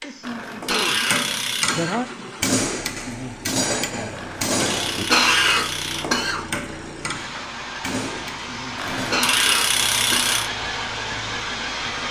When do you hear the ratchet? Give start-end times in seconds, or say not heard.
0.2-1.8, 4.2-6.1, 8.8-10.5.